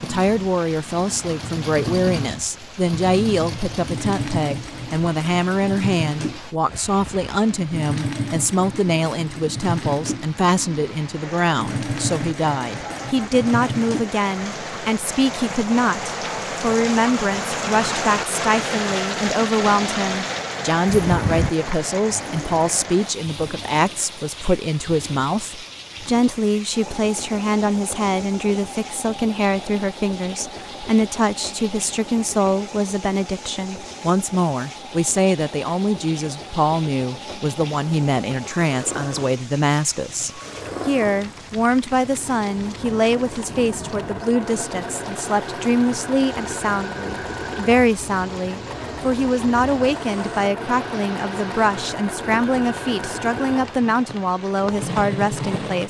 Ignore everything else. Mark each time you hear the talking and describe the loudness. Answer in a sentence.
The talking can be heard from 0.0 to 55.8 s, at a steady volume.